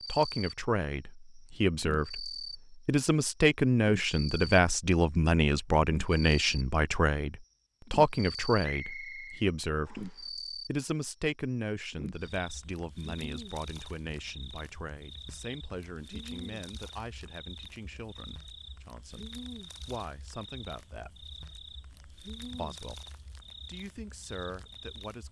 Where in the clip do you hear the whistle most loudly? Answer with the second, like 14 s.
9 s.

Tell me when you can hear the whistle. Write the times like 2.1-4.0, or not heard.
8.6-10.2.